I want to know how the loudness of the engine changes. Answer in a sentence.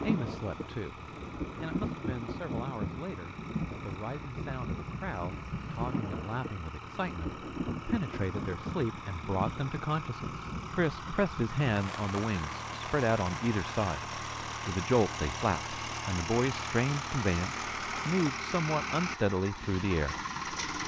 The volume of the engine goes up.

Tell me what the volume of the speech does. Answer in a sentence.
The loudness of the speech goes up.